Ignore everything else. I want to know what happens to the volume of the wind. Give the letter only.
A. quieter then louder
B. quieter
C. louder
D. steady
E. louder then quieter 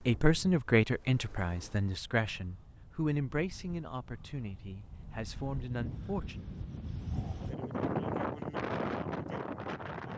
C.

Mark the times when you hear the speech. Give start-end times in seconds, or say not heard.
0.1-6.5.